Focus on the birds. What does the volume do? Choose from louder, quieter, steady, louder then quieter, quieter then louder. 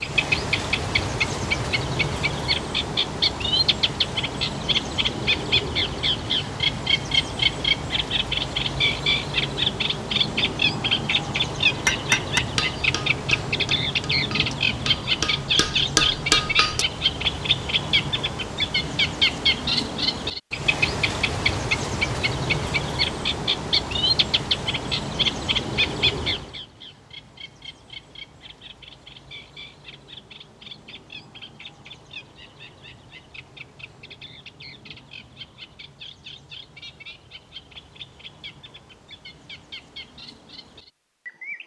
quieter.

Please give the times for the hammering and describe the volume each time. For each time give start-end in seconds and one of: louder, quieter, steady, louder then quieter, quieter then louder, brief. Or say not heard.
11.8-16.9 quieter then louder.